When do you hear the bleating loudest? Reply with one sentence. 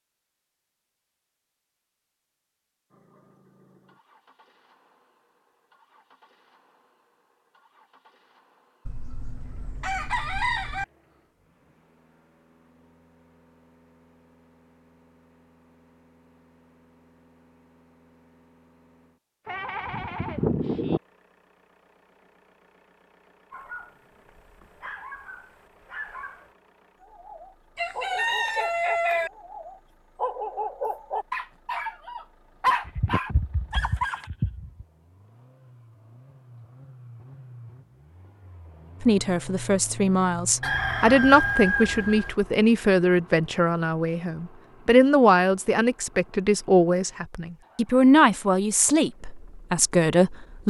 The volume of the bleating peaks at 21 seconds.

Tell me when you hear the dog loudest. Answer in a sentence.
The volume of the dog peaks at 33 seconds.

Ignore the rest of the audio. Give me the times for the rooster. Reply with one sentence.
You can hear the rooster from 8.8 to 10.8 s, from 27.8 to 29.3 s and from 40.6 to 42.3 s.